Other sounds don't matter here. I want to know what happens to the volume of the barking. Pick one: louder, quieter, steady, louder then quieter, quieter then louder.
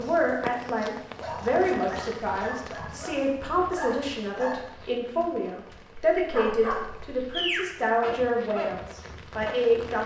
louder.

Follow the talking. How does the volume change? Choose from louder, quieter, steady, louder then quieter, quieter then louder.
steady.